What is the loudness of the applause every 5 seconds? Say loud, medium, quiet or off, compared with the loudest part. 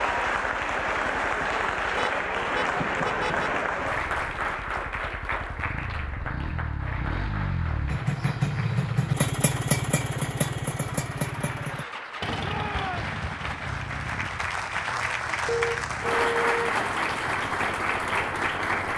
loud, medium, medium, loud.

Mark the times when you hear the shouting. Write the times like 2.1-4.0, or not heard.
12.4-13.2.